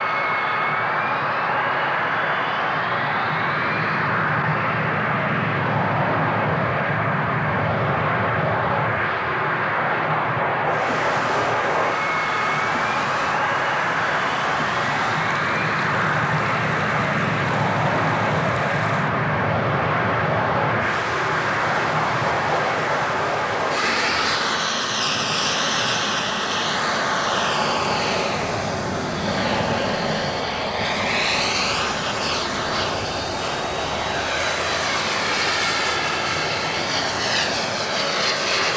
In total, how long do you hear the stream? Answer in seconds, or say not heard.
28 s.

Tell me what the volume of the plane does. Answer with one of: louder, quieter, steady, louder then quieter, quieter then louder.
steady.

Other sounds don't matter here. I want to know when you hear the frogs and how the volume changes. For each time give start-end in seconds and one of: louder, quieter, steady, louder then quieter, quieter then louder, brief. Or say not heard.
not heard.